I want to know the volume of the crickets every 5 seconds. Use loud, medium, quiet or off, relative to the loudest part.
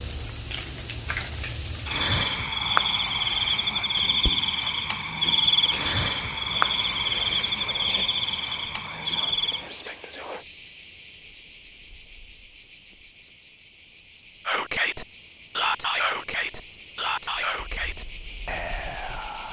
loud, loud, medium, medium.